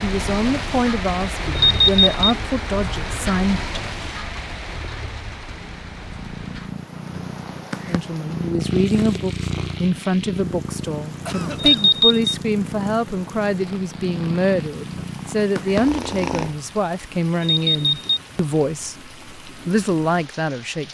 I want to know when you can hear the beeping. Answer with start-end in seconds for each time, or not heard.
1.6-2.2, 11.6-12.3, 17.4-18.2.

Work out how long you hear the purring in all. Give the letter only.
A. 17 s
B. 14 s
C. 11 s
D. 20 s
C.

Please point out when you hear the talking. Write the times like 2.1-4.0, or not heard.
0.0-3.8, 7.8-20.8.